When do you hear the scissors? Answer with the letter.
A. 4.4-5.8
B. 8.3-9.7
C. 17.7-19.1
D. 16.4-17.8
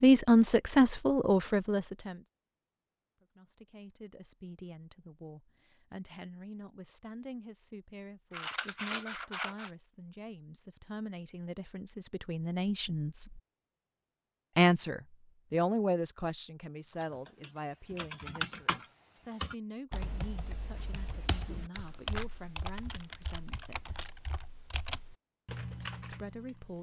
B.